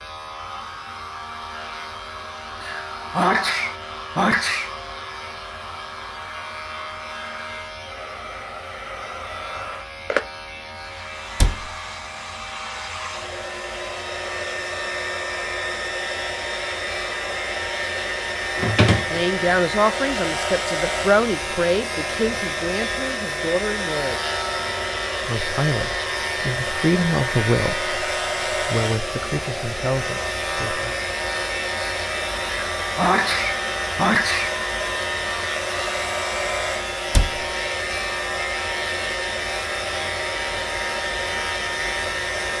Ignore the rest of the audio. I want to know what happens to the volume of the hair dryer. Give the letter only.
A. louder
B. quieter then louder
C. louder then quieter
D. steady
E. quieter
A.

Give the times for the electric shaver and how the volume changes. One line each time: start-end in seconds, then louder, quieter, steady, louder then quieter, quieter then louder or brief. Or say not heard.
0.0-42.5 louder.